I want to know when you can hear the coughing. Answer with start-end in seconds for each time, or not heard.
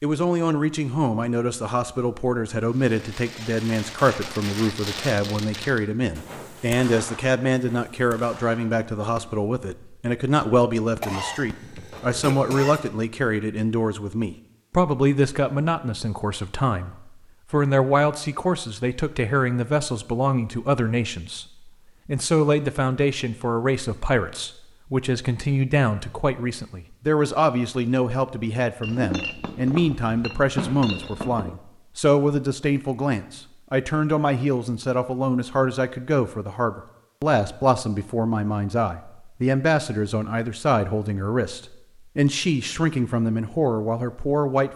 11.0-12.9.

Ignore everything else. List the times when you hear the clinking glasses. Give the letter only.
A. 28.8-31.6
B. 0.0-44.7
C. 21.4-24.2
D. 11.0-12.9
A.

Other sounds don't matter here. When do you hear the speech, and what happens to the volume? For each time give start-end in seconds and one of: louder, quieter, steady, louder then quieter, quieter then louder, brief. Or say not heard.
0.0-44.7 steady.